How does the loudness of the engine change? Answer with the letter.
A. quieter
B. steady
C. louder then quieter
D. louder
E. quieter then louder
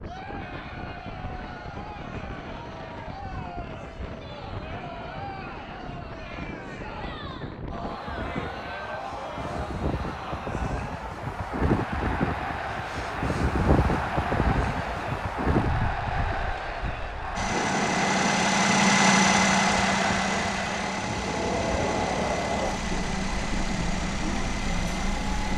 A.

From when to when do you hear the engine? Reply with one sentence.
The engine can be heard from 17.4 to 25.5 s.